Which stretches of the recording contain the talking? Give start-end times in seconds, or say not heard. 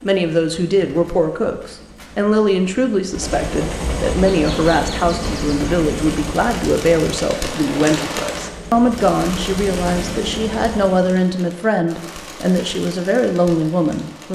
0.0-14.3.